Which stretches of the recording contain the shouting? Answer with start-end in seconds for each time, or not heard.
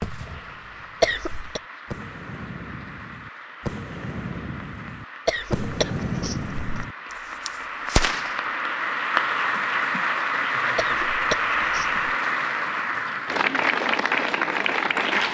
not heard.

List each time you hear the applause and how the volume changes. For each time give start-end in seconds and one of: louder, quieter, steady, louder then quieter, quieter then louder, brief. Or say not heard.
0.0-15.2 louder.